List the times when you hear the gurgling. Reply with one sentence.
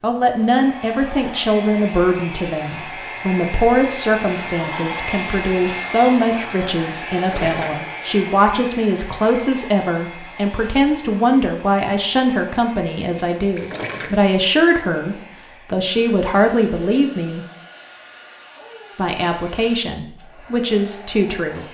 You can hear the gurgling from 7.2 to 7.8 s and from 13.6 to 14.2 s.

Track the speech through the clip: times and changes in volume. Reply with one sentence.
The speech can be heard from 0.0 to 17.4 s, at a steady volume; and briefly from 18.9 to 21.6 s.